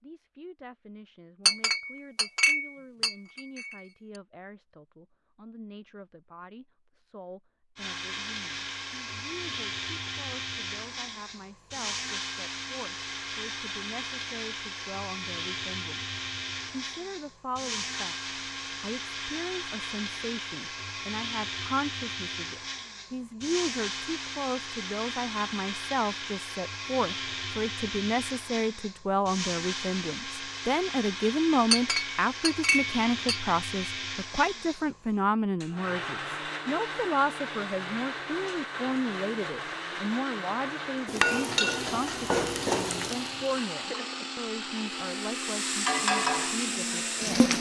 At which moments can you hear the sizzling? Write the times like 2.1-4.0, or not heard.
41.0-47.5.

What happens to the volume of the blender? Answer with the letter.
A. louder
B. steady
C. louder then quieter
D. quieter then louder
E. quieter
B.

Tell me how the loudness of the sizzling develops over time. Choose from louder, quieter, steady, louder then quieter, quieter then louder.
quieter then louder.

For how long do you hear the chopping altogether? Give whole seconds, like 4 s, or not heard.
not heard.